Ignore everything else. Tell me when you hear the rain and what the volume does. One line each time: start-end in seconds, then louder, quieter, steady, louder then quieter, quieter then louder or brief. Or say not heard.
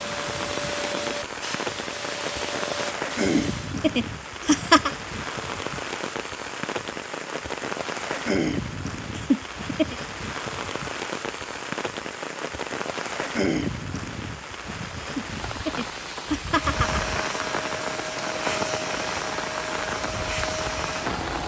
0.0-21.4 steady.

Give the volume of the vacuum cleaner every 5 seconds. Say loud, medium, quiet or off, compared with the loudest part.
loud, off, off, loud, loud.